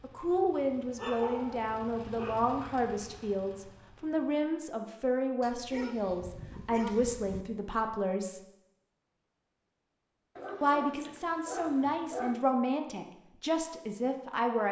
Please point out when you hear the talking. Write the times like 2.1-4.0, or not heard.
0.0-8.4, 10.6-14.6.